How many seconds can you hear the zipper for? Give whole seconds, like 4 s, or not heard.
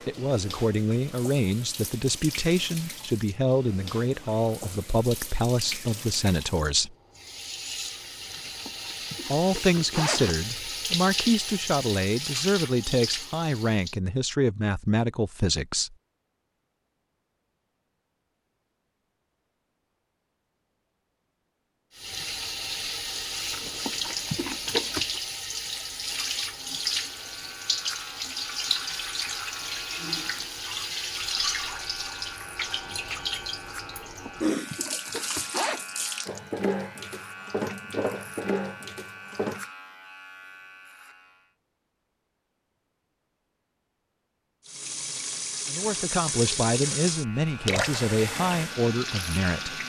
6 s.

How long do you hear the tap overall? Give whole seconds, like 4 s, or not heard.
37 s.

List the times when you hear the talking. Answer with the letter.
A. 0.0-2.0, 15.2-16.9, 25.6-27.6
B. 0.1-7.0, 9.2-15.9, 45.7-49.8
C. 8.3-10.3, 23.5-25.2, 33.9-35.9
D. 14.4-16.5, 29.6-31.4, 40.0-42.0
B.